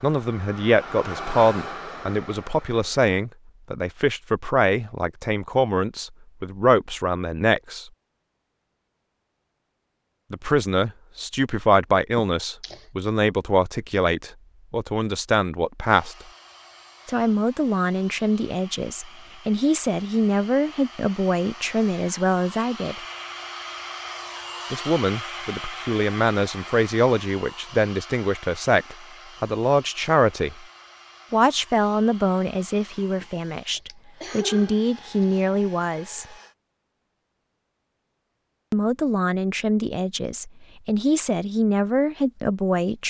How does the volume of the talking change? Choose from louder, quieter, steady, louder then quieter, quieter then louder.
steady.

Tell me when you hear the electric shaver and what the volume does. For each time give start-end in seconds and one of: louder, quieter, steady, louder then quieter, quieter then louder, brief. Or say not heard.
not heard.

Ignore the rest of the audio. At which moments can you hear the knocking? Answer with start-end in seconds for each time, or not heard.
not heard.